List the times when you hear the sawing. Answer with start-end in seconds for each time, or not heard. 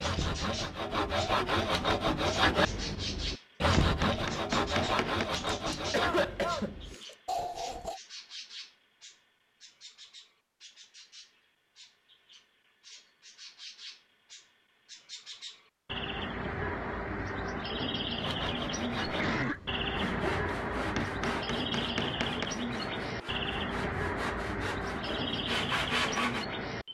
0.0-8.0, 18.1-26.4.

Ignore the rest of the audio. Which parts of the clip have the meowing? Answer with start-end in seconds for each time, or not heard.
not heard.